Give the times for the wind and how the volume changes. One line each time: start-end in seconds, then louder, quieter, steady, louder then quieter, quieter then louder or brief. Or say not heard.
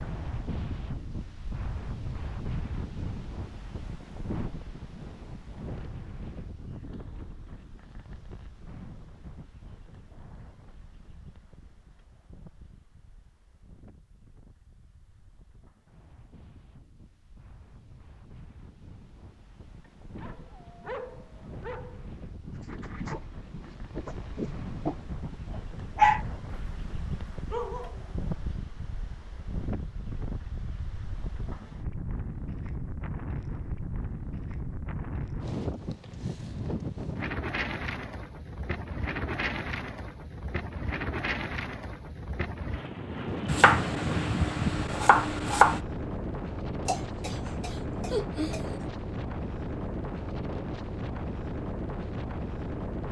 0.0-53.0 quieter then louder.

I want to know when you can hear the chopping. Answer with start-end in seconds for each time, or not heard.
43.5-45.8.